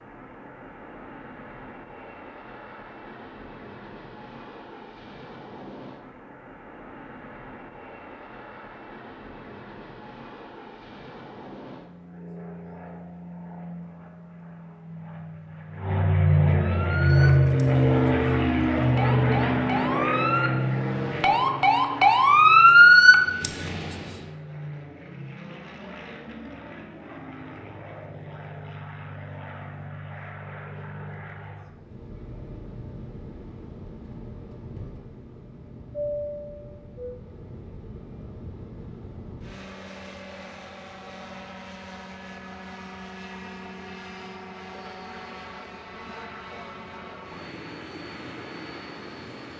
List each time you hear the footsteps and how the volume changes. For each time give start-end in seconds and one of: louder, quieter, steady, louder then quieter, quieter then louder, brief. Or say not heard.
not heard.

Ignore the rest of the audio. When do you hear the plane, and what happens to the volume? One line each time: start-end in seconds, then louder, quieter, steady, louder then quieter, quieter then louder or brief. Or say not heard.
0.0-49.5 louder then quieter.